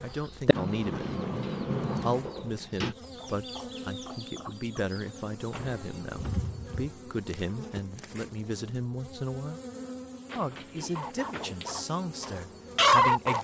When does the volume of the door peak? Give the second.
2 s.